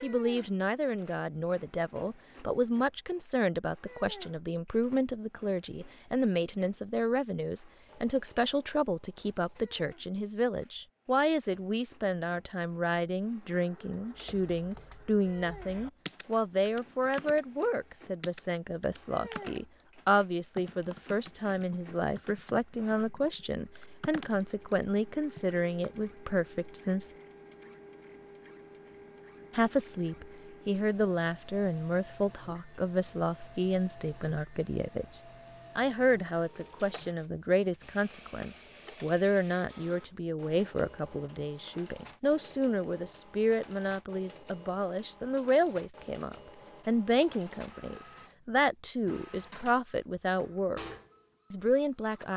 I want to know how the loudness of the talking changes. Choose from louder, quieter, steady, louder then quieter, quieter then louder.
steady.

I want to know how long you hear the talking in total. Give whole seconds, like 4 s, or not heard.
49 s.